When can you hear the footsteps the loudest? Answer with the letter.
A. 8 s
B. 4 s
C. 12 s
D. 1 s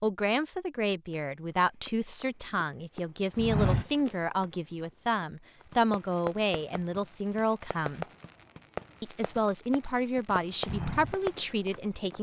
B.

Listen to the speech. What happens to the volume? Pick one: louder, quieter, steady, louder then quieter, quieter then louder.
steady.